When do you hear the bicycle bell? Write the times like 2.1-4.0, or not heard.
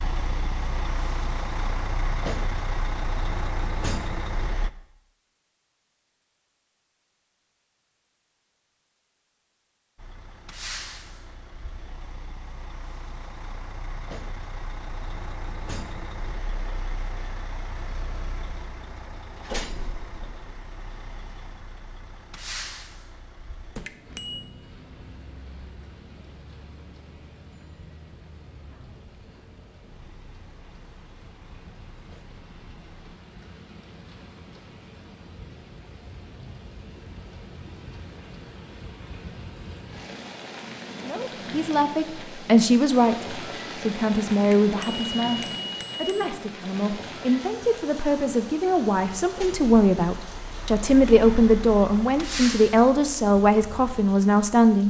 23.9-24.4, 44.6-46.3.